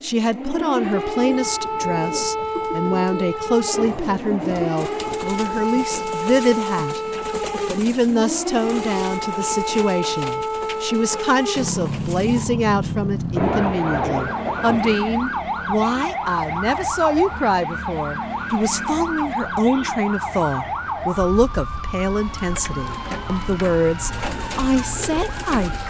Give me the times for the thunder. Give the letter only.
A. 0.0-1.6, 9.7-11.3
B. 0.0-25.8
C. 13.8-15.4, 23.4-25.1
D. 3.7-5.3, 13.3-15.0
D.